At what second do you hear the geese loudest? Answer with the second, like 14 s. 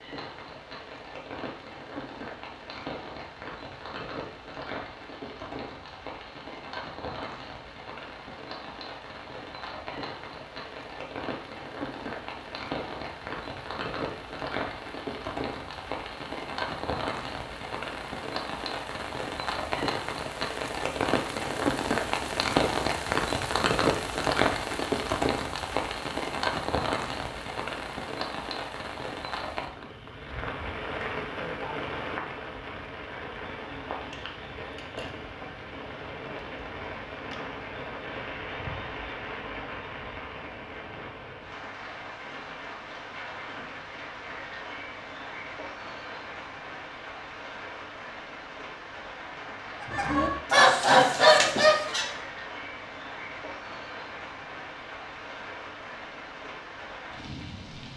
51 s.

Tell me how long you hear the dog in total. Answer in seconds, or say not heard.
not heard.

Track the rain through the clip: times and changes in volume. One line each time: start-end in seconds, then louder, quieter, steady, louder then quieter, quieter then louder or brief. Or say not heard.
0.0-57.9 louder then quieter.